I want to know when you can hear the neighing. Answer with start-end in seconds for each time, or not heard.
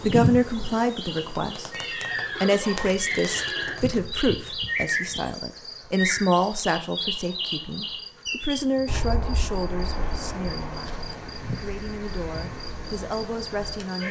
1.7-3.8.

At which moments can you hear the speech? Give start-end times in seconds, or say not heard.
0.0-1.7, 2.4-10.9, 11.5-14.0.